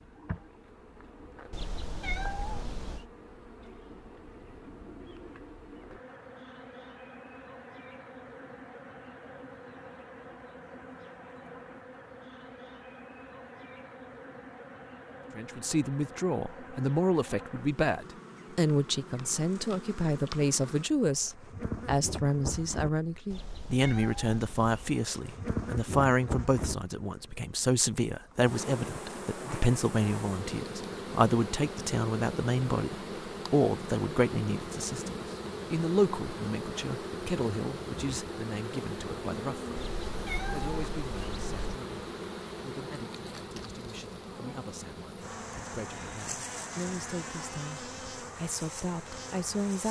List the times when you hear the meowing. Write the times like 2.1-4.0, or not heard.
1.5-3.0, 23.3-24.9, 39.8-41.8.